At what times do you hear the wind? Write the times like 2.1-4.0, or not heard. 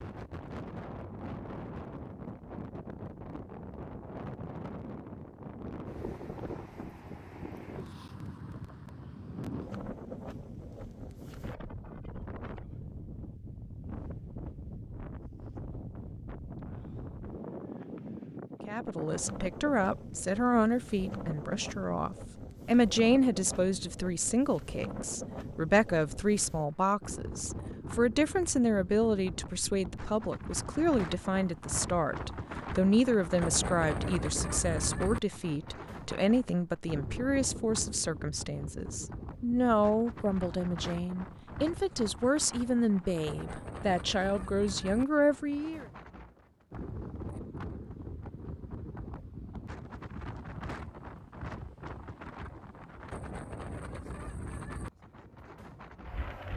0.0-56.5.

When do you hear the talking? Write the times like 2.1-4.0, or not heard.
18.6-45.9.